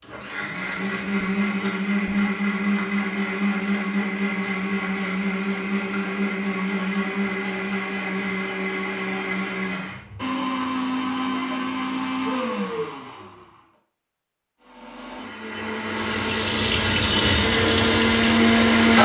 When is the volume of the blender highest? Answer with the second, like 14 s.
19 s.